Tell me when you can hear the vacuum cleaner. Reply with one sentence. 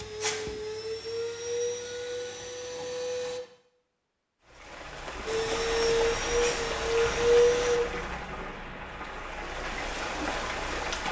You can hear the vacuum cleaner from 0.0 to 3.4 s and from 5.2 to 7.8 s.